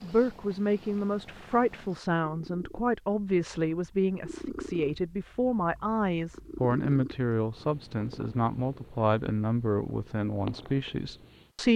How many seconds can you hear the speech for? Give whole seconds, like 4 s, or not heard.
12 s.